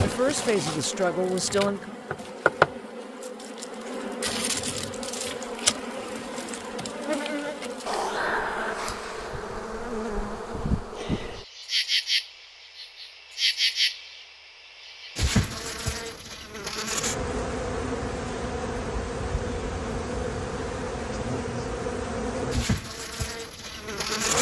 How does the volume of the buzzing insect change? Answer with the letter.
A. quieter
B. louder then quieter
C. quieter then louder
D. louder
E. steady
E.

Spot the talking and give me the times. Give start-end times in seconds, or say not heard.
0.0-1.9.